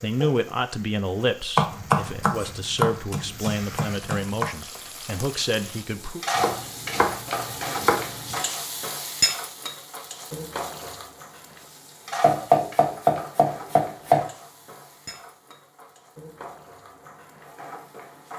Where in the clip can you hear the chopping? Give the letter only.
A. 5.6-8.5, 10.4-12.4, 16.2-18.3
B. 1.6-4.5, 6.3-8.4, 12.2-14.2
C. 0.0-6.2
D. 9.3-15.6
B.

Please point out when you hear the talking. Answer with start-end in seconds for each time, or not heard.
0.0-6.2.